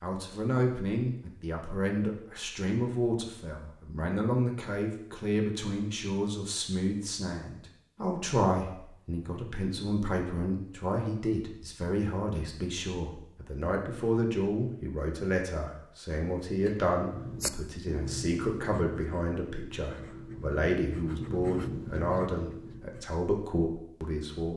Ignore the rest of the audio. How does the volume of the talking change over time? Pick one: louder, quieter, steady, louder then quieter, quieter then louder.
steady.